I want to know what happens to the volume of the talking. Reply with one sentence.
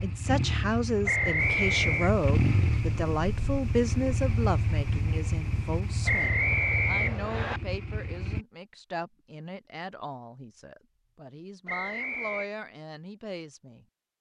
The loudness of the talking goes down.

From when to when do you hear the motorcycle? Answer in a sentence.
You can hear the motorcycle from 0.0 to 8.4 s.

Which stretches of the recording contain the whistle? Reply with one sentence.
You can hear the whistle from 1.1 to 2.1 s, from 6.0 to 7.6 s and from 11.7 to 12.5 s.